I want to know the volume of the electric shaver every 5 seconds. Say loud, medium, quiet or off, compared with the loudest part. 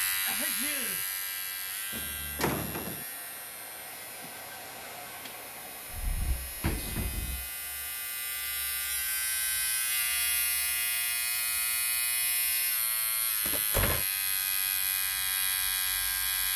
medium, medium, loud, loud.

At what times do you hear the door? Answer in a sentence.
You can hear the door from 1.9 to 3.0 s, from 5.9 to 7.5 s and from 13.4 to 14.1 s.